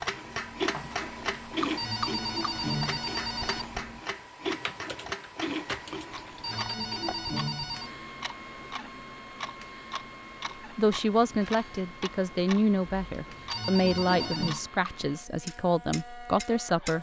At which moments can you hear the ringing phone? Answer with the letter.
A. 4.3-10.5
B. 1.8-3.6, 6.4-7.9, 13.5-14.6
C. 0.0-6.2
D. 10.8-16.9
B.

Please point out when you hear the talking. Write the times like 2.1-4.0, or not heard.
10.8-16.9.